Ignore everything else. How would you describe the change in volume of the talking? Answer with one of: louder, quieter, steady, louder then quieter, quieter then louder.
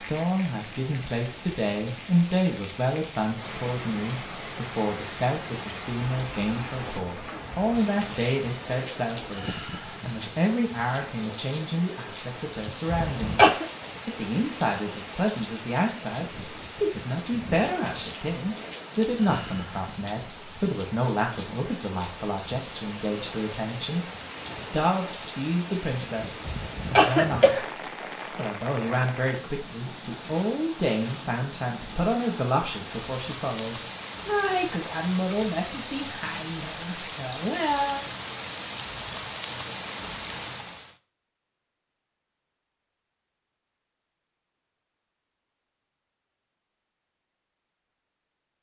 steady.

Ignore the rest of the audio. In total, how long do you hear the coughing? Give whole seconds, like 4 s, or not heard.
2 s.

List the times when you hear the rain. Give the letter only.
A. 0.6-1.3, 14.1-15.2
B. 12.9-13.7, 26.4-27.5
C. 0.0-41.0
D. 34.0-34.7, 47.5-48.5
C.